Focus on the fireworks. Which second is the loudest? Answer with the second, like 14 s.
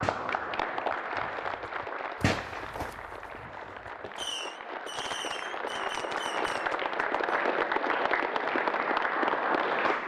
2 s.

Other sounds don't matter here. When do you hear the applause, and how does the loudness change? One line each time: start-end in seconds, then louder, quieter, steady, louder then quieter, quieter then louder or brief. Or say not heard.
0.0-10.0 quieter then louder.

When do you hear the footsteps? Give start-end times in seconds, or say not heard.
2.1-4.3.